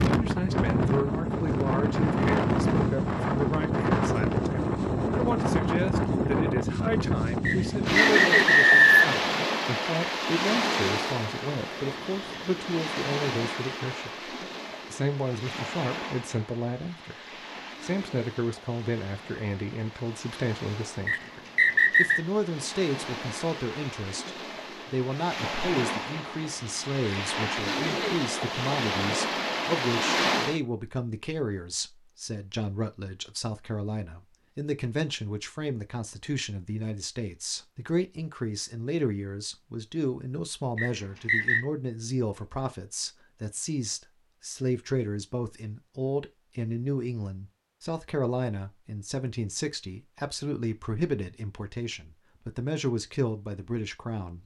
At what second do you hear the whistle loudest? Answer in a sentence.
The volume of the whistle peaks at 9 seconds.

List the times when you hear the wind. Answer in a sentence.
The wind can be heard from 0.0 to 30.6 s.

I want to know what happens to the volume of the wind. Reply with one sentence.
The loudness of the wind goes down, then up.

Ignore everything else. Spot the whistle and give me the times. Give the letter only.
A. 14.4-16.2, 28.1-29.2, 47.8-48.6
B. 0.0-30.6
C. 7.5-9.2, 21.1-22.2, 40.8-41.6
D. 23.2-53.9
C.